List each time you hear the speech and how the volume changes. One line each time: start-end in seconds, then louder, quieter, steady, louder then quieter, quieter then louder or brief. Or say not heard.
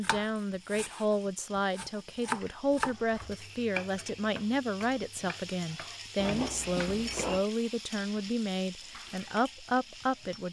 0.0-10.4 steady.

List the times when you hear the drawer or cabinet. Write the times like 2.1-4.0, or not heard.
2.5-3.4, 6.2-7.5.